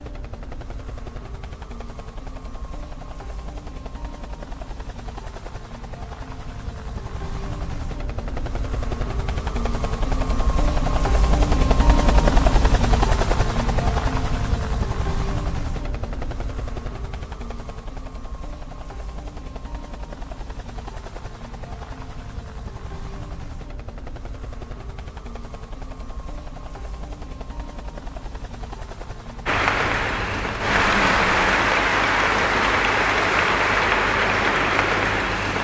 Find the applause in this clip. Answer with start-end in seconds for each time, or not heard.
29.4-35.5.